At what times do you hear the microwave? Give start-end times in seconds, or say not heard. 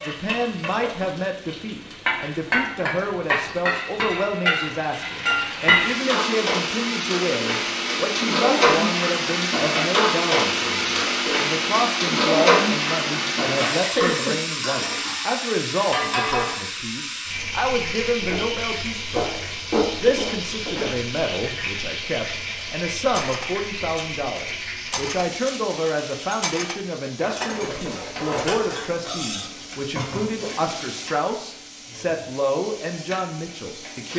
not heard.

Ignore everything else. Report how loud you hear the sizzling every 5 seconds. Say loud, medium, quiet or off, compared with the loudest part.
medium, loud, loud, medium, medium, quiet, quiet.